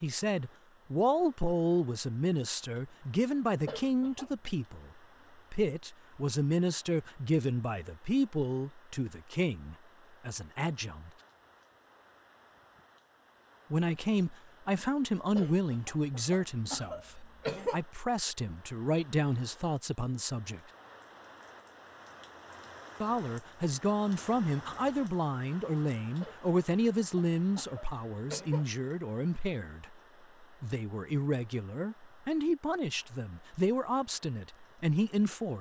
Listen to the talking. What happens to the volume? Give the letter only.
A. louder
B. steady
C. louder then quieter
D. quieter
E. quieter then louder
B.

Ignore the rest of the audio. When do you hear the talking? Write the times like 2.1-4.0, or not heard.
0.0-4.9, 5.5-11.1, 13.7-20.6, 23.0-35.5.